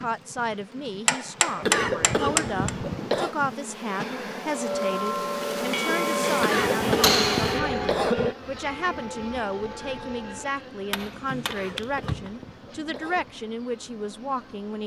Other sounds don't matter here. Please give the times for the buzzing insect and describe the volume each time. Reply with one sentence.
The buzzing insect can be heard from 0.0 to 14.8 s, getting louder then quieter.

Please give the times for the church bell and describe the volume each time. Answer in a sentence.
You can hear the church bell from 4.5 to 10.4 s, getting quieter.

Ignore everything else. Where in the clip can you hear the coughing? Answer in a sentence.
You can hear the coughing from 1.6 to 3.4 s, from 6.4 to 8.3 s and from 11.4 to 13.3 s.